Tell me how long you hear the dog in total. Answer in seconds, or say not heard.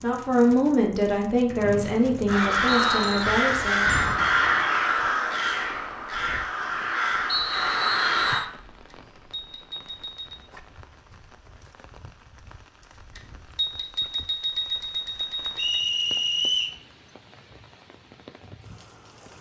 not heard.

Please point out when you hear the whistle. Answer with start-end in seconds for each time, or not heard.
1.6-3.2, 7.2-8.5, 15.6-16.8.